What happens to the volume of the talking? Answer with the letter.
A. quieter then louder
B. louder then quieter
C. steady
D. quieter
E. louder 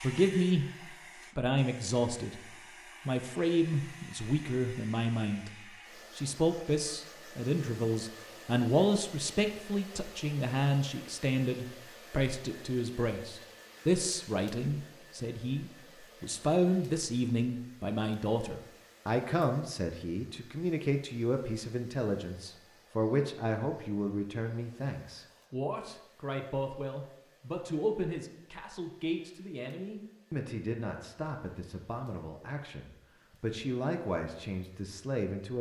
D.